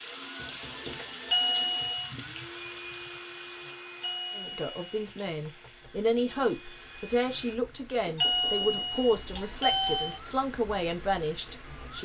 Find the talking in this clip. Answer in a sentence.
You can hear the talking from 4.3 to 12.0 s.